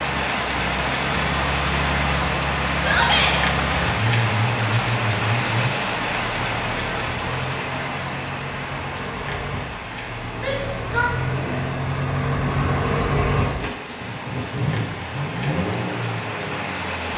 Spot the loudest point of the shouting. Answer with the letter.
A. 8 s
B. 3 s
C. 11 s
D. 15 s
B.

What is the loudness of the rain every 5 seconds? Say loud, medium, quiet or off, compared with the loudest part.
loud, loud, medium, medium.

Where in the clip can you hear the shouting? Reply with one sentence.
The shouting can be heard from 2.8 to 3.4 s and from 10.3 to 11.7 s.